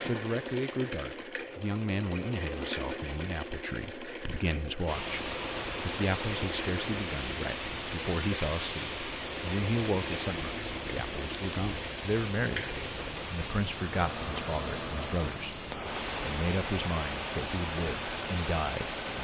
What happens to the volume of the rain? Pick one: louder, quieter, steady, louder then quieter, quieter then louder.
steady.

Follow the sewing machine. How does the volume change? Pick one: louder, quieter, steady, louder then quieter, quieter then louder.
steady.